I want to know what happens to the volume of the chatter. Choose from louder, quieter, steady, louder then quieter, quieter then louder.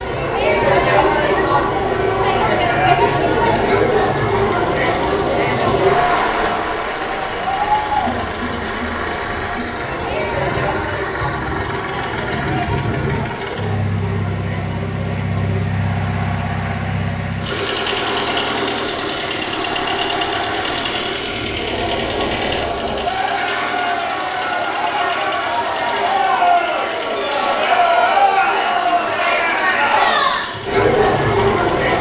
quieter then louder.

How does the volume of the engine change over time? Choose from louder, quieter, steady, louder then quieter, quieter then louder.
louder then quieter.